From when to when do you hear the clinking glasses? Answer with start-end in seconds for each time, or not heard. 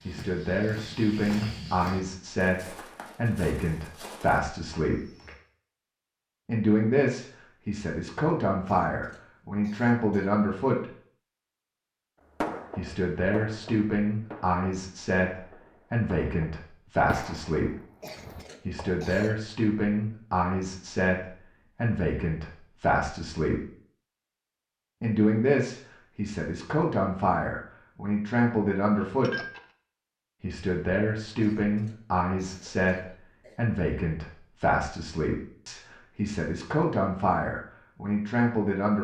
28.9-29.6.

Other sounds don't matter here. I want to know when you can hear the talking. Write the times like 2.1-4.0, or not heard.
0.1-5.0, 6.5-10.8, 12.8-17.8, 18.6-23.6, 25.0-29.4, 30.4-38.9.